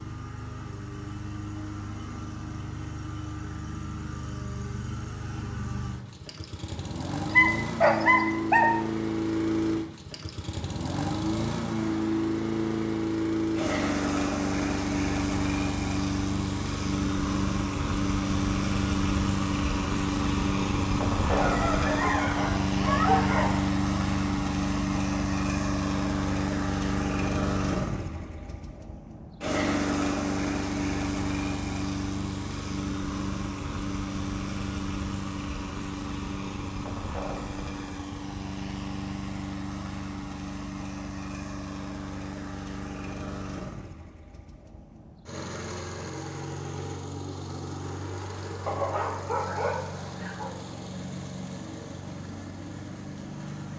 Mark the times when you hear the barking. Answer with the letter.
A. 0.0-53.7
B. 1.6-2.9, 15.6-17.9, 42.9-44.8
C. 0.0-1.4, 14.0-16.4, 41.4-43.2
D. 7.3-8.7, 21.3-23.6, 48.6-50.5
D.